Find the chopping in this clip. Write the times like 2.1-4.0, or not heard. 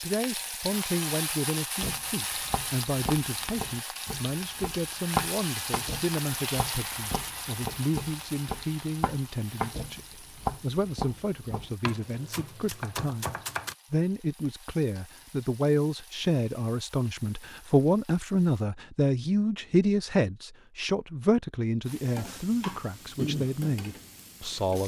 1.8-13.8.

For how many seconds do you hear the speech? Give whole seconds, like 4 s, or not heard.
25 s.